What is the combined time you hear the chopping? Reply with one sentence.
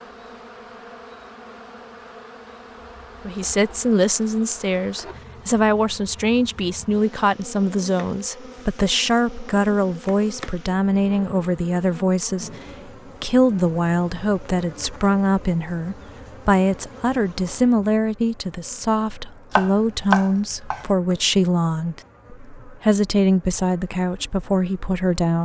The chopping can be heard for 4 seconds in total.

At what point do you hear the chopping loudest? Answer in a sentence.
The volume of the chopping peaks at 20 seconds.